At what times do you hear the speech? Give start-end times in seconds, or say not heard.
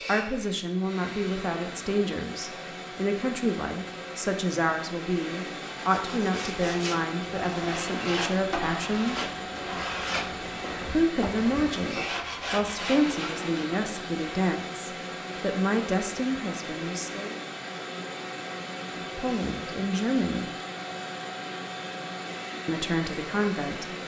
0.1-9.2, 10.9-17.4, 19.1-20.5, 22.6-23.9.